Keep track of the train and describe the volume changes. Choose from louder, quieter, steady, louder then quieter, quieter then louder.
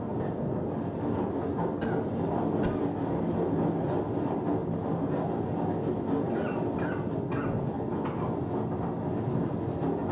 steady.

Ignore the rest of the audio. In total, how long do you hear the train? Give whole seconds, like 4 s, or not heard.
10 s.